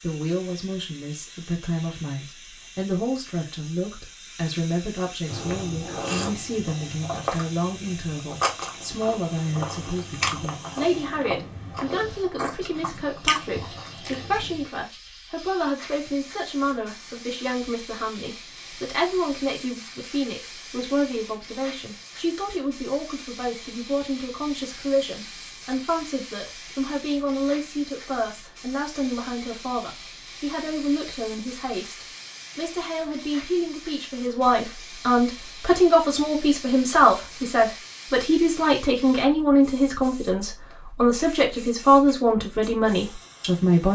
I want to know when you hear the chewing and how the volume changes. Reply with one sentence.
The chewing can be heard from 5.2 to 14.7 s, at a steady volume.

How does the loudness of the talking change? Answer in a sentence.
The loudness of the talking goes up.